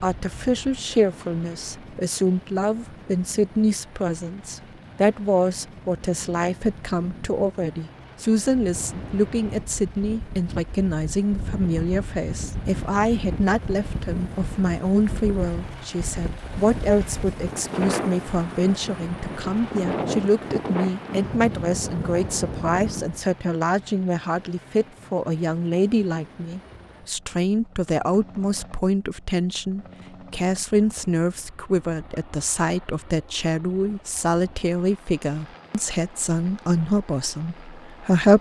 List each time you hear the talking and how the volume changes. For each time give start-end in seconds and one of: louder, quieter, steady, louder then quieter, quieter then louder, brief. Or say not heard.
0.0-38.3 steady.